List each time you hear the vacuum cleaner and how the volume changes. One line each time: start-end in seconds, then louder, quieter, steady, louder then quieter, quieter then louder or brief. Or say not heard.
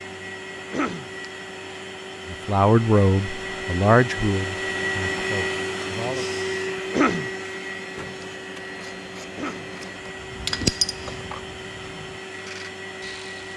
0.0-13.5 louder then quieter.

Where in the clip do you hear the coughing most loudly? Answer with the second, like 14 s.
7 s.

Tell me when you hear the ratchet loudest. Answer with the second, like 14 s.
11 s.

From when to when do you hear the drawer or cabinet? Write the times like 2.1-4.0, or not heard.
not heard.